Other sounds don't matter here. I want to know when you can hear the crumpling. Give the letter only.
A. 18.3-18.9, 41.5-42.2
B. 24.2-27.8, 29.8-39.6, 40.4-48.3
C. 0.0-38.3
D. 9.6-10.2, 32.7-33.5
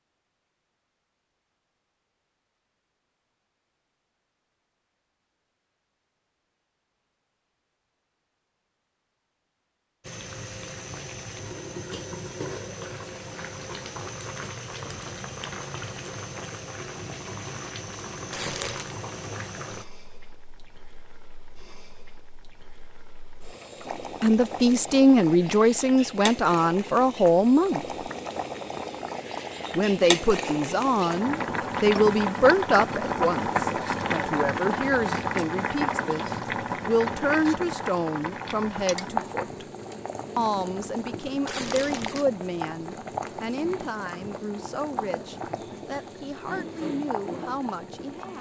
A.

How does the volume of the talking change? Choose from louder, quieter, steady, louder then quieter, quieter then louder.
quieter.